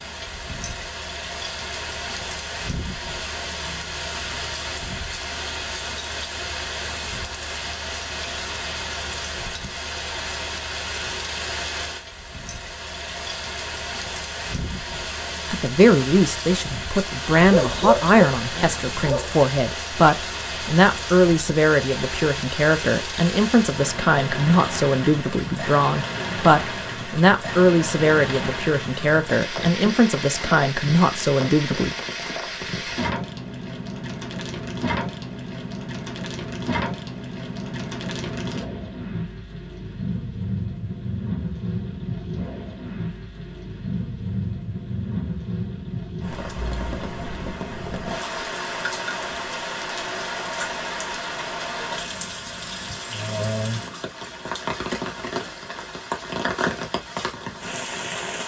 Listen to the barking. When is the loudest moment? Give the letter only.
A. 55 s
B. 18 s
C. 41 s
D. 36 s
B.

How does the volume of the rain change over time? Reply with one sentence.
The loudness of the rain stays about the same.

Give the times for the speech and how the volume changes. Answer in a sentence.
The speech can be heard from 15.5 to 31.9 s, at a steady volume.